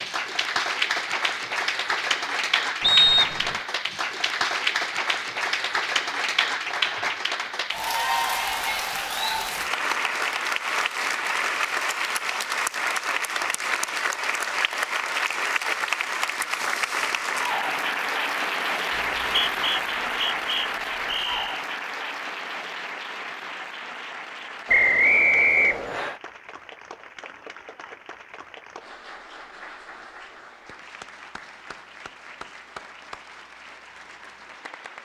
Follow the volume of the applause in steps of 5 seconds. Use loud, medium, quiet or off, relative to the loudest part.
loud, loud, loud, loud, medium, quiet, quiet.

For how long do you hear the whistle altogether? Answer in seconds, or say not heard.
5 s.